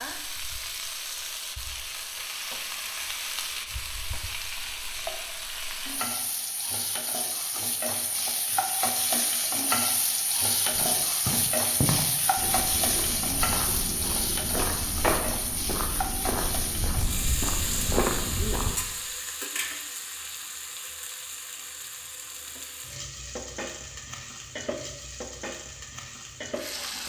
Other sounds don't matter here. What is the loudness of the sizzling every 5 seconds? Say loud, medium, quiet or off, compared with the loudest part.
medium, loud, loud, loud, medium, medium.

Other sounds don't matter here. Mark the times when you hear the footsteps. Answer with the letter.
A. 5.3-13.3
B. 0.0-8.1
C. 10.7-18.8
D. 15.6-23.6
C.